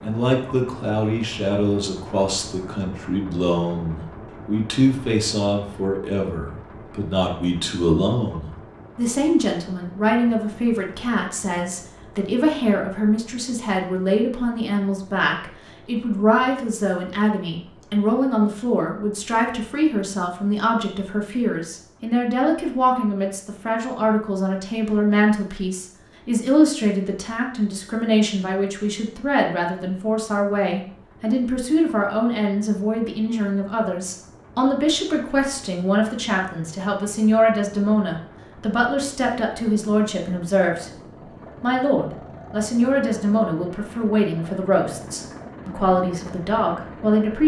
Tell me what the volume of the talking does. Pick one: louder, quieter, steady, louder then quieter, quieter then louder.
steady.